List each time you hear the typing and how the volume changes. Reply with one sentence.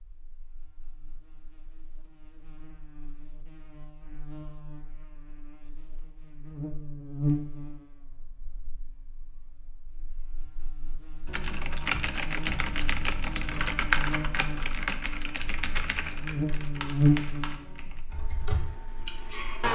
You can hear the typing from 11.2 to 19.6 s, getting quieter.